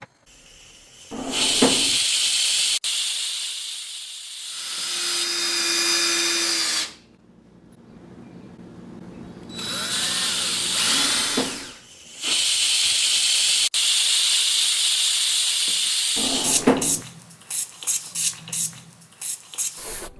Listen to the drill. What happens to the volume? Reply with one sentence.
The volume of the drill goes down, then up.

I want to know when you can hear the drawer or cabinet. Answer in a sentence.
You can hear the drawer or cabinet from 1.1 to 1.9 s, from 10.8 to 11.7 s and from 16.1 to 17.0 s.